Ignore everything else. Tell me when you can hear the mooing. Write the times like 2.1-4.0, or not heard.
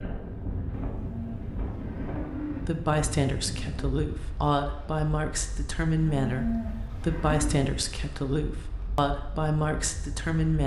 0.9-2.8, 6.0-7.6.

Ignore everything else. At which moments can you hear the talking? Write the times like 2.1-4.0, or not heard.
2.5-10.6.